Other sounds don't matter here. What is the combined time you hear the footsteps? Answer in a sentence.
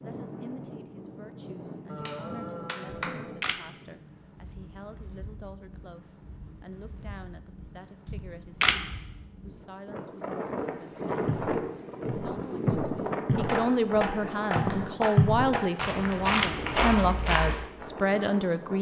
The footsteps can be heard for 6 seconds in total.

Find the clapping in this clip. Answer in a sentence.
You can hear the clapping from 1.9 to 3.4 s and from 13.4 to 15.7 s.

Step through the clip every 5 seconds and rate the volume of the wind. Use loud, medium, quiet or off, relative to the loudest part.
medium, quiet, loud, medium.